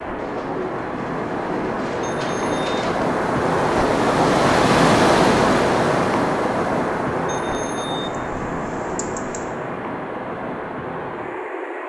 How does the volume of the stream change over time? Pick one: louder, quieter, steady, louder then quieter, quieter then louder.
louder then quieter.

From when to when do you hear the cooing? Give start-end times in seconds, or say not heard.
0.1-3.1, 8.1-9.6.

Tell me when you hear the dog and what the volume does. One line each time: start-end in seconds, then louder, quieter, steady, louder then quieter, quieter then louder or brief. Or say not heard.
not heard.